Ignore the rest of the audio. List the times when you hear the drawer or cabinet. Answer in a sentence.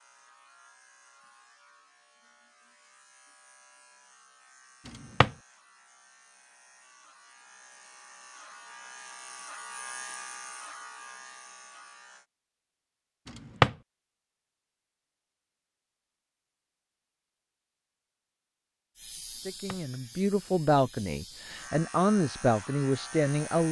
You can hear the drawer or cabinet from 4.8 to 5.3 s, from 13.2 to 13.8 s and from 19.4 to 19.8 s.